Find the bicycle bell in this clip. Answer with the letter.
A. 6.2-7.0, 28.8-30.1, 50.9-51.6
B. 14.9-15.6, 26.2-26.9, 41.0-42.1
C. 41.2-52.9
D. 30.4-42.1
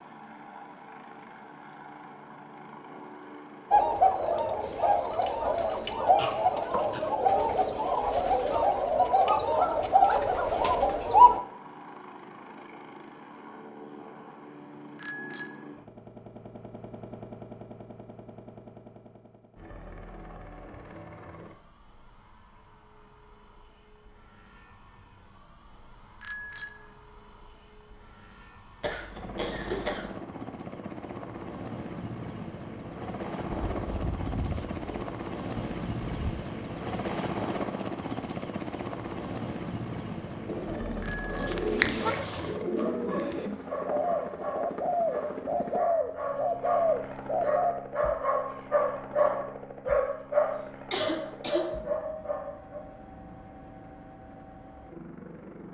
B.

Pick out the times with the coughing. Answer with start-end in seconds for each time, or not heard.
6.2-7.0, 28.8-30.1, 50.9-51.6.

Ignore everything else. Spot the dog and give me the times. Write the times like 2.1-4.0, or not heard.
41.2-52.9.